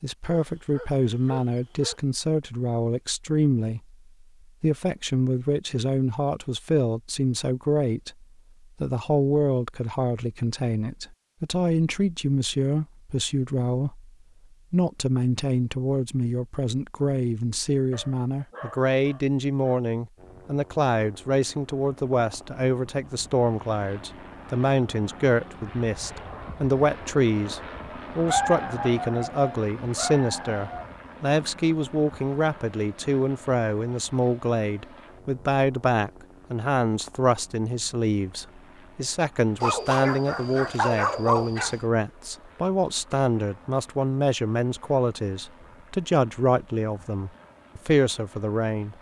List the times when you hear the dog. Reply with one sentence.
You can hear the dog from 0.2 to 2.0 s, from 17.9 to 19.8 s, from 28.2 to 30.9 s and from 39.6 to 41.8 s.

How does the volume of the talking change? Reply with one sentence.
The loudness of the talking stays about the same.